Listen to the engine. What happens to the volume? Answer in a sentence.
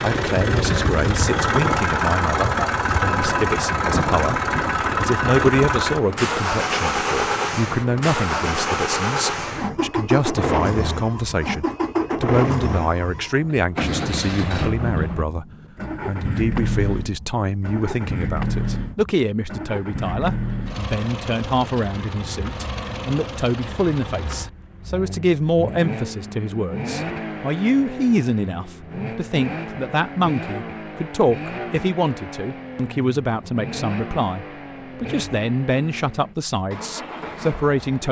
The loudness of the engine goes down.